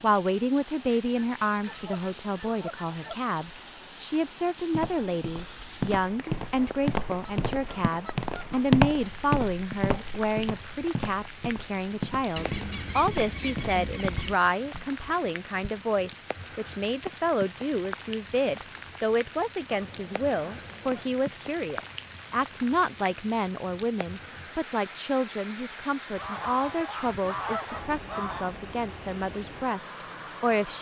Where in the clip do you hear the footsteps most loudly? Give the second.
9 s.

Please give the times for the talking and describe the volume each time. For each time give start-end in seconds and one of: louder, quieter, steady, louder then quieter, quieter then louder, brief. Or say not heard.
0.0-30.7 steady.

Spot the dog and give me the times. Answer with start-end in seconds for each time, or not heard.
not heard.